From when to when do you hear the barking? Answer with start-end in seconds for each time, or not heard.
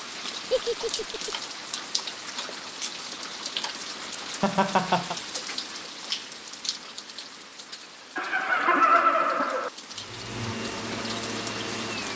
not heard.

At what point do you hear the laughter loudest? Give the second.
9 s.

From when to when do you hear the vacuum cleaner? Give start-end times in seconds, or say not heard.
9.9-12.1.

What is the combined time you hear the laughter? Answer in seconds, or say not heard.
3 s.